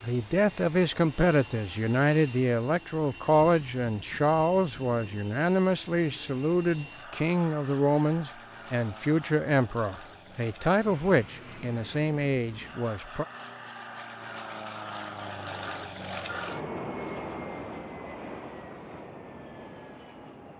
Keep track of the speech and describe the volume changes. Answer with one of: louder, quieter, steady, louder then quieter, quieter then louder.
steady.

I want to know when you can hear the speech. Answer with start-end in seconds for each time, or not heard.
0.0-13.2.